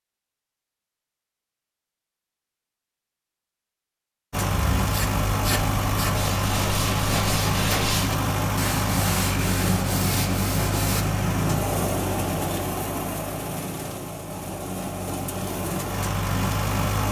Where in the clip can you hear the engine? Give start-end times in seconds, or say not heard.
4.3-17.0.